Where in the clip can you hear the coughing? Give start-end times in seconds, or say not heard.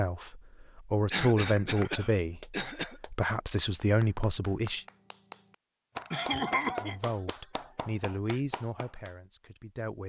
1.1-3.0, 6.1-7.1.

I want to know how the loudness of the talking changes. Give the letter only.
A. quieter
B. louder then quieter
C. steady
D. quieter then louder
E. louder
A.